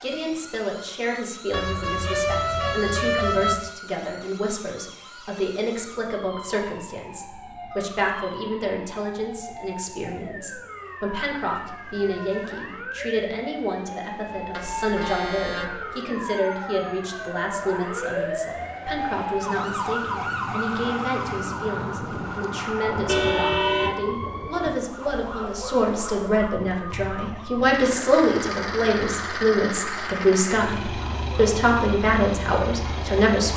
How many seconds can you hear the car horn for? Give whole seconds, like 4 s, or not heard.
5 s.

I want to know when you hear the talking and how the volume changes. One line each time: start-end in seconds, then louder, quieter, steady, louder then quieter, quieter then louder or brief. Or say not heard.
0.0-33.5 louder.